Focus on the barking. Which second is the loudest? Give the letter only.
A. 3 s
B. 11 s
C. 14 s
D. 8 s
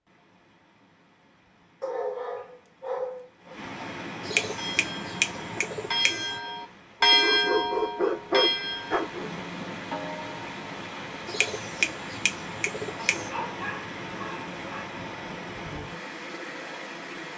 D.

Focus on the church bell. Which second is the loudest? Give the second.
7 s.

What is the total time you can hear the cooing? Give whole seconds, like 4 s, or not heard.
4 s.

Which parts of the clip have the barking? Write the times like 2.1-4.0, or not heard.
1.8-3.5, 7.1-9.4, 13.2-14.8.